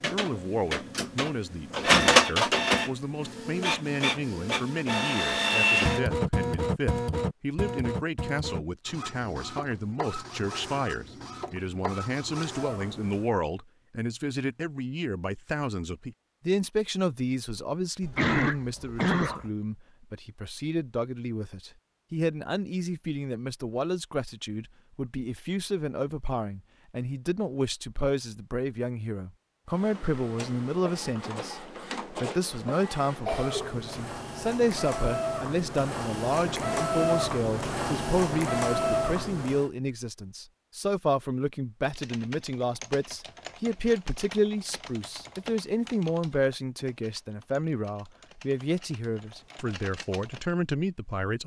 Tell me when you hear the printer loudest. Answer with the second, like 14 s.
2 s.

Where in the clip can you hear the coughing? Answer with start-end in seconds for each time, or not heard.
18.0-19.5, 33.2-34.0.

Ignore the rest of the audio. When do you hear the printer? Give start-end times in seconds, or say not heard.
0.0-13.3, 29.7-39.7.